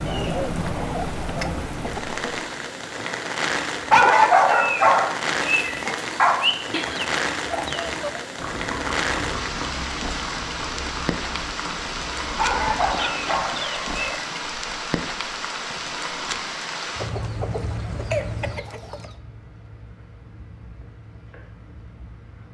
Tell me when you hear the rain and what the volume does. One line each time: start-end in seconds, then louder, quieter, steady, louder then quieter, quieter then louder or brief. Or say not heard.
0.0-22.5 quieter.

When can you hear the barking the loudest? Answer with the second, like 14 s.
4 s.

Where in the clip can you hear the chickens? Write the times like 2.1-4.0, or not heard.
0.1-2.5, 6.7-8.2, 12.7-14.2, 16.9-19.1.